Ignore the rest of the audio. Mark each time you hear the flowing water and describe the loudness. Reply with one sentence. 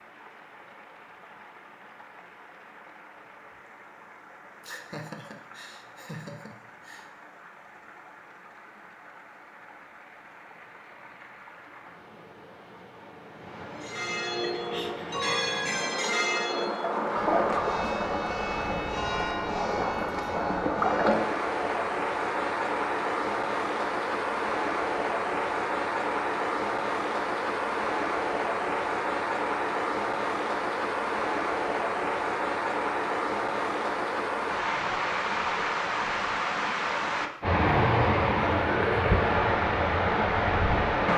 You can hear the flowing water from 0.0 to 41.1 s, getting louder.